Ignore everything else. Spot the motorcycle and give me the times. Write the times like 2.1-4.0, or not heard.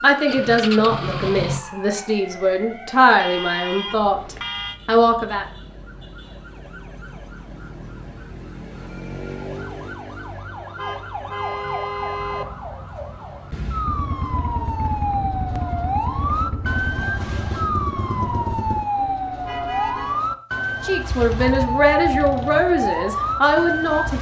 0.1-1.6, 13.8-18.9, 21.0-24.1.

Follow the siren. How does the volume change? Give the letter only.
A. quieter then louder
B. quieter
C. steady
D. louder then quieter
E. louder
E.